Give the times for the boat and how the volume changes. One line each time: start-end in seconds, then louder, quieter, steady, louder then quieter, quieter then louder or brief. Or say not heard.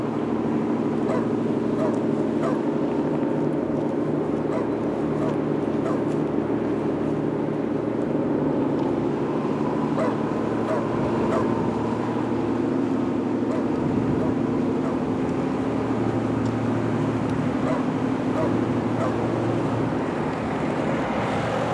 0.0-21.6 steady.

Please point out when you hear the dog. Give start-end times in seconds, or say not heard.
0.9-2.6, 4.3-6.0, 9.8-11.5, 13.3-15.0, 17.5-19.2.